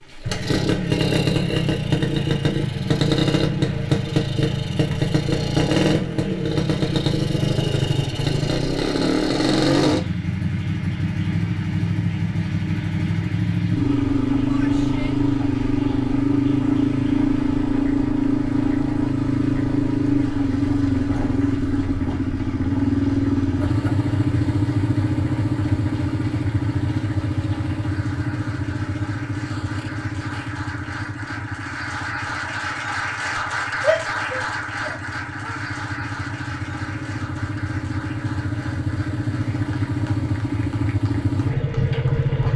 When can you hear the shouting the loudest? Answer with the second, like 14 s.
34 s.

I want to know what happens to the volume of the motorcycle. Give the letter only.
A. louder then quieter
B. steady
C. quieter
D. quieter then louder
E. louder
C.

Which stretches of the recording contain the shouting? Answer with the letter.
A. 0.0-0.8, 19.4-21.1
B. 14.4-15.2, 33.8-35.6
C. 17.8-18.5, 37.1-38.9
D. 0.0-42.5
B.